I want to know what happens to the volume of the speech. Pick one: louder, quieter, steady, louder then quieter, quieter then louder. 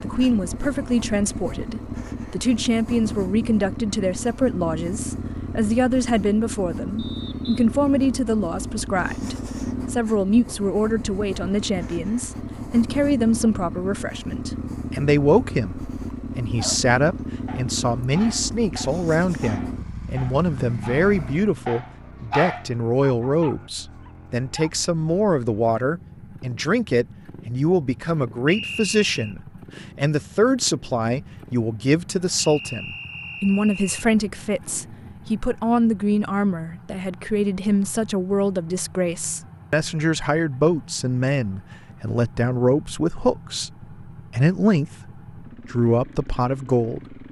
steady.